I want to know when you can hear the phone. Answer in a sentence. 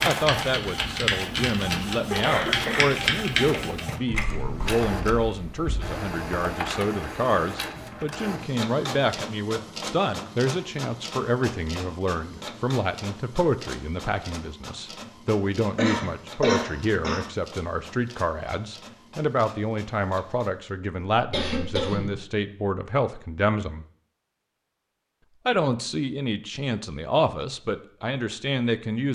The phone can't be heard in this clip.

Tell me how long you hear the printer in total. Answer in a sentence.
You can hear the printer for 21 seconds altogether.